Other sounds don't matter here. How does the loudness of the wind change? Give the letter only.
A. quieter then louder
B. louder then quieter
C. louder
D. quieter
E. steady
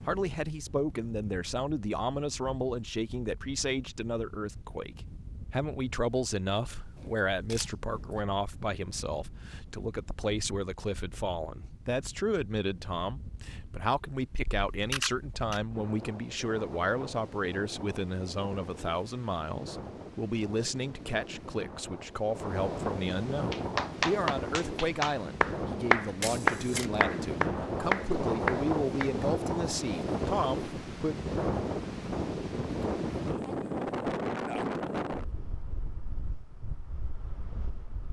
C.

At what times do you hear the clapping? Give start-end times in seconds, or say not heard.
23.5-29.1.